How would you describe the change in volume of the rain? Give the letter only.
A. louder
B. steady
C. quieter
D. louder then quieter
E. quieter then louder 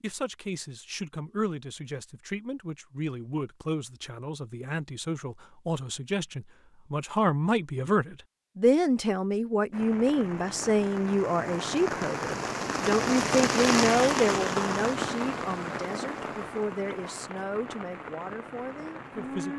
D.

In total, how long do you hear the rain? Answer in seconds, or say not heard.
10 s.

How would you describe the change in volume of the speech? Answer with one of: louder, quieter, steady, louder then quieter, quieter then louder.
louder then quieter.